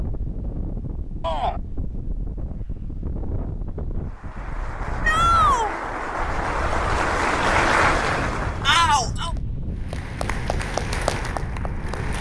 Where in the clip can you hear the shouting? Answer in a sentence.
The shouting can be heard from 1.2 to 1.6 s, from 5.0 to 5.7 s and from 8.7 to 9.3 s.